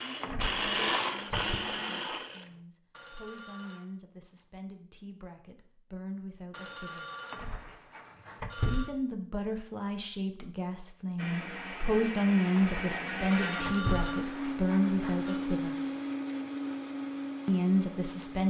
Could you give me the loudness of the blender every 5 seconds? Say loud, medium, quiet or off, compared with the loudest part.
loud, off, loud, loud.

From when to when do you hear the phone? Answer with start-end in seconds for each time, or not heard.
2.9-3.9, 6.5-8.9, 13.3-15.4.